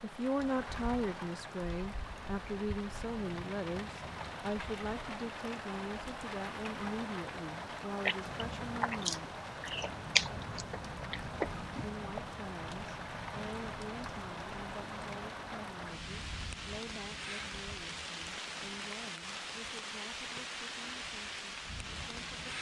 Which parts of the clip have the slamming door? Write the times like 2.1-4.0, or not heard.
not heard.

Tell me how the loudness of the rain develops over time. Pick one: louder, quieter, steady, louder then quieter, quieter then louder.
steady.